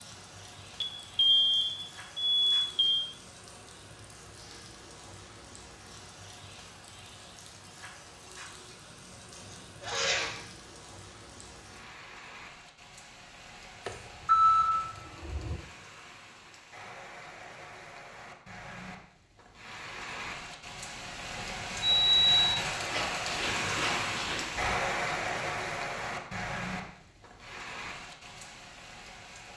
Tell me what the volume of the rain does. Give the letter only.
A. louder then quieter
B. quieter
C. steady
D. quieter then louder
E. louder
E.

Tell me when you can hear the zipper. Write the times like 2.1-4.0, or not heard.
9.3-10.4, 22.9-24.6.